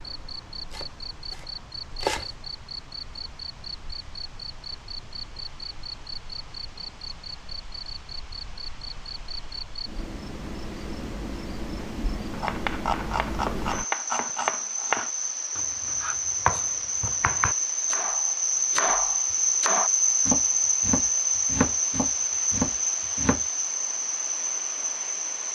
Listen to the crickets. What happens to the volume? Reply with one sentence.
The loudness of the crickets goes up.